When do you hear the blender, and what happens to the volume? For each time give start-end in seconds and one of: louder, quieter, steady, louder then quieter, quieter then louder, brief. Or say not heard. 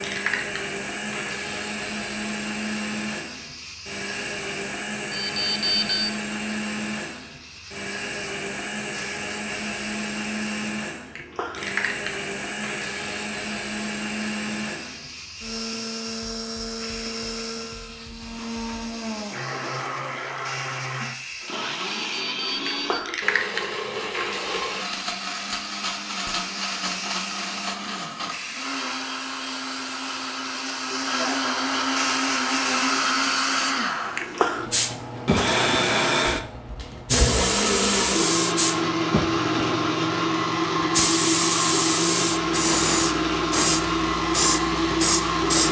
0.0-45.6 louder.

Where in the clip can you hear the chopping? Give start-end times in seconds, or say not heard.
not heard.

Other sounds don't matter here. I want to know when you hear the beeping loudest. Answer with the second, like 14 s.
6 s.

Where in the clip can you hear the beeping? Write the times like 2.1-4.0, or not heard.
5.1-6.2, 21.9-23.1, 32.6-33.6.